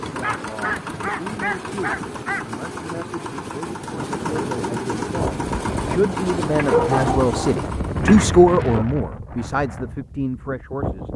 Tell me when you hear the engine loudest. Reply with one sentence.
The loudest moment of the engine is at 5 seconds.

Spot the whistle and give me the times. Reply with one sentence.
You can't hear the whistle here.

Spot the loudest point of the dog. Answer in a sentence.
The volume of the dog peaks at 7 seconds.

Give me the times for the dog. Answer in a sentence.
You can hear the dog from 0.2 to 2.5 s and from 6.5 to 8.8 s.